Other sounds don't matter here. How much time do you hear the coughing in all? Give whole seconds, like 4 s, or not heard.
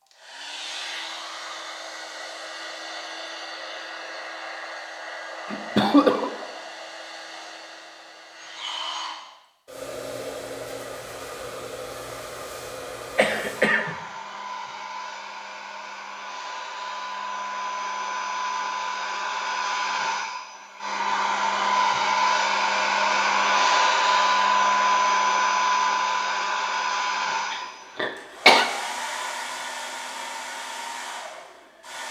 3 s.